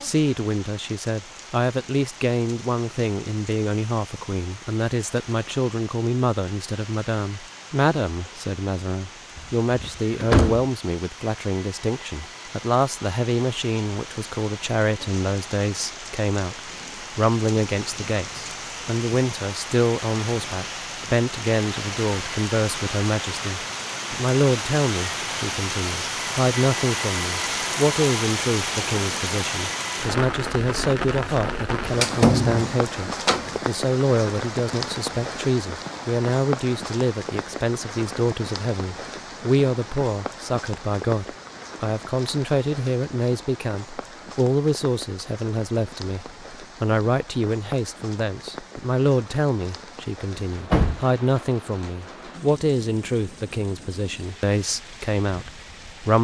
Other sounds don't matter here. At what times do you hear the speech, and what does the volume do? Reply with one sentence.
The speech can be heard from 0.0 to 56.1 s, at a steady volume.